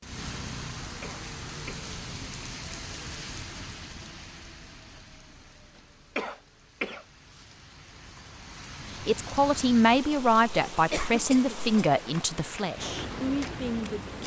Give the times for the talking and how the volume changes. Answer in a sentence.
You can hear the talking from 9.1 to 14.2 s, getting quieter.